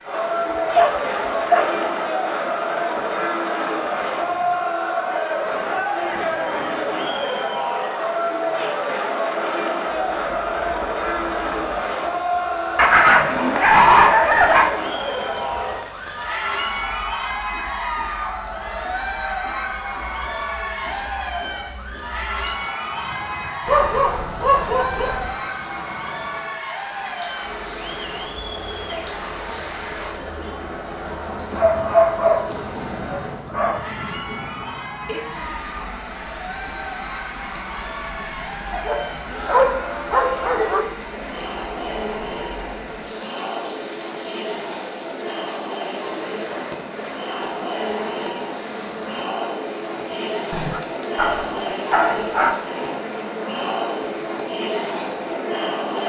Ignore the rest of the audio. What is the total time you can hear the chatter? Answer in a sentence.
You can hear the chatter for 56 seconds altogether.